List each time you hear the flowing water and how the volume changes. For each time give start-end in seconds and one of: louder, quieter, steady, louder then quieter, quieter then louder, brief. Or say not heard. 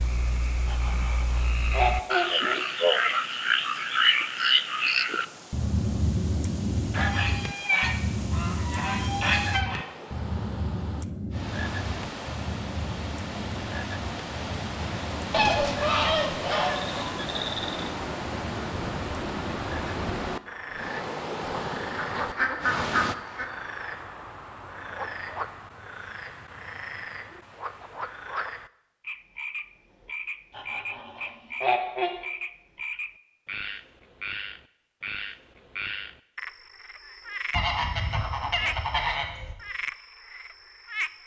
0.0-23.1 louder.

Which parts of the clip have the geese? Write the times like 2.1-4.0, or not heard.
0.7-2.5, 6.9-9.8, 15.3-17.1, 21.9-23.4, 30.6-32.1, 37.5-39.5.